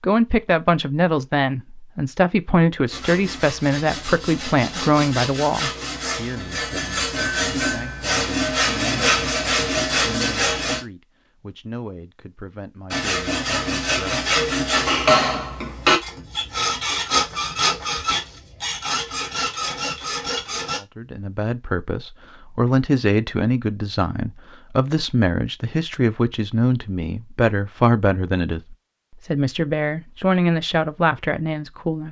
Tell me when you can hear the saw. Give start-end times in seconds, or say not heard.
2.9-10.8, 12.9-20.8.